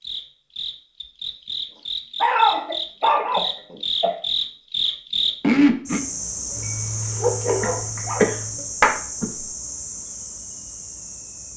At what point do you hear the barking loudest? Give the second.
2 s.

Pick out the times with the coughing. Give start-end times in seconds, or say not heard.
2.5-4.2, 7.6-9.4.